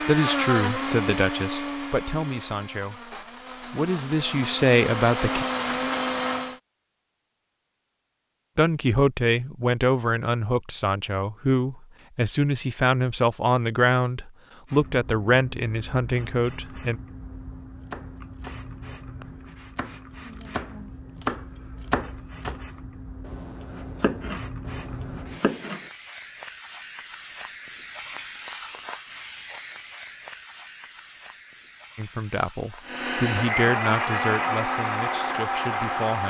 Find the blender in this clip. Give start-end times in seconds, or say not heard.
0.0-6.6, 32.8-36.2.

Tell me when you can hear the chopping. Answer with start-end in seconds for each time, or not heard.
17.9-18.6, 19.2-22.6, 23.2-25.9.